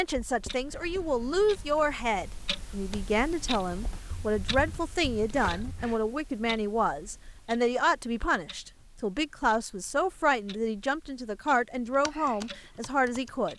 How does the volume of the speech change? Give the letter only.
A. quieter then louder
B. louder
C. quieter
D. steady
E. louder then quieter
D.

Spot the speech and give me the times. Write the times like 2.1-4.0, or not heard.
0.0-13.5.